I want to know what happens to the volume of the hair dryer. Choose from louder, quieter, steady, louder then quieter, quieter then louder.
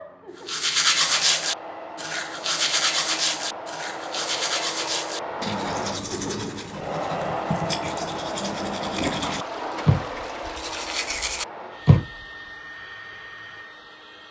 louder then quieter.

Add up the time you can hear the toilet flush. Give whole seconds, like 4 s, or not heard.
2 s.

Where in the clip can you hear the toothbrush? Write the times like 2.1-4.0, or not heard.
0.5-12.1.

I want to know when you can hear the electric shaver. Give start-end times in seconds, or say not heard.
not heard.